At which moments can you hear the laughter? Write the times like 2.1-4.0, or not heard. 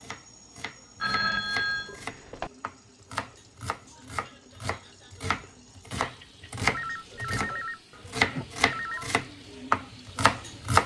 not heard.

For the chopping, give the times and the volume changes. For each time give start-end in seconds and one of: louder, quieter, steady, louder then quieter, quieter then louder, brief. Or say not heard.
0.0-10.8 louder.